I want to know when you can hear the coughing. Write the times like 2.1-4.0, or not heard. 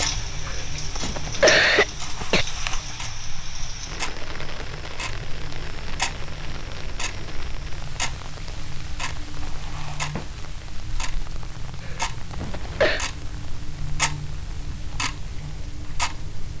0.5-2.5, 11.8-13.1.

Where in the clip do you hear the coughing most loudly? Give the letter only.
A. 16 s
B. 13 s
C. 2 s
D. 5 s
C.